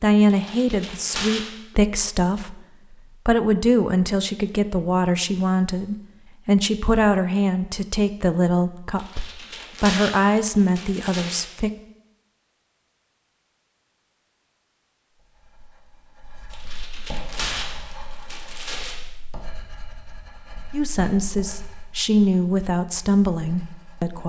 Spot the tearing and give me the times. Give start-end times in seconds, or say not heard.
0.3-1.5, 8.9-11.6, 16.5-18.9.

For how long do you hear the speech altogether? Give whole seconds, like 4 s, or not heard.
15 s.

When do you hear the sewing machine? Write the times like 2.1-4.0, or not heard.
not heard.